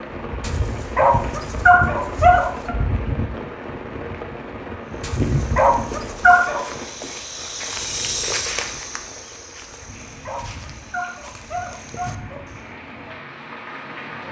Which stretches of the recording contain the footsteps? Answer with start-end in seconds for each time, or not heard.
4.8-12.8.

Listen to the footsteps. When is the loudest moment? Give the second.
8 s.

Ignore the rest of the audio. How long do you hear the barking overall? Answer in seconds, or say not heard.
7 s.